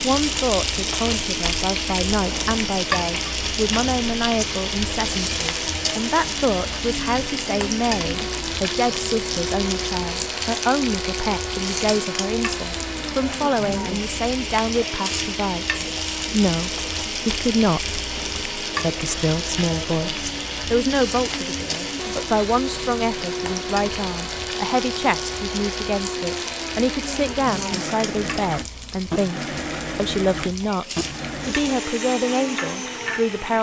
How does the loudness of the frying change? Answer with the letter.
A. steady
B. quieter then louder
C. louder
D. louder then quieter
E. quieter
E.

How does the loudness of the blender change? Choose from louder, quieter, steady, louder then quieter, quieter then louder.
steady.